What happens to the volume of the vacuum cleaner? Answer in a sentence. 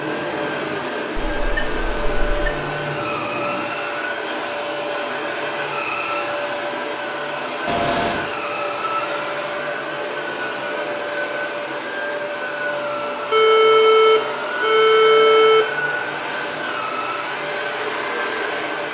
The loudness of the vacuum cleaner stays about the same.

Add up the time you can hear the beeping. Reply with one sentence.
You can hear the beeping for 4 seconds altogether.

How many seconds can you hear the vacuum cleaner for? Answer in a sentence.
The vacuum cleaner can be heard for 19 seconds in total.